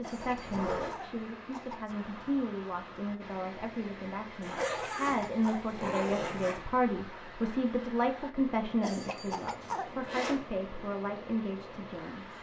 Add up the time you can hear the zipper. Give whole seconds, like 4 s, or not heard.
4 s.